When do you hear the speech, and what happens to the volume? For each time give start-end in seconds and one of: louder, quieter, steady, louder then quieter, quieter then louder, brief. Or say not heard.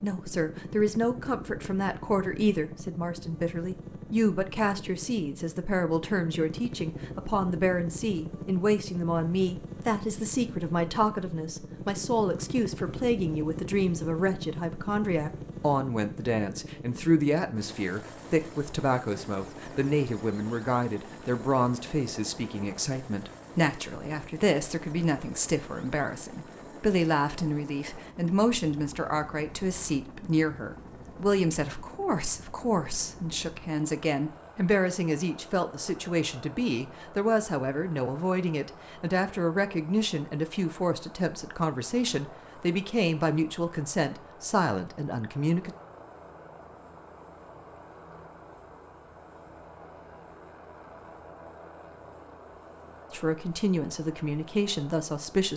0.0-45.7 steady
53.1-55.5 brief.